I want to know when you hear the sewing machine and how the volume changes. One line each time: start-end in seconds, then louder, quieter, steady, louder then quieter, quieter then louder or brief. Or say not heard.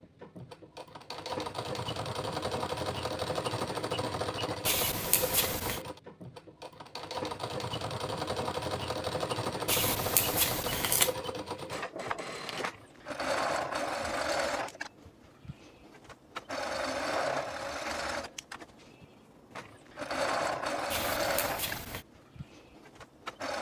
0.0-23.5 steady.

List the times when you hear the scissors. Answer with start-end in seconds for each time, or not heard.
4.7-5.8, 9.7-11.2, 20.9-22.1.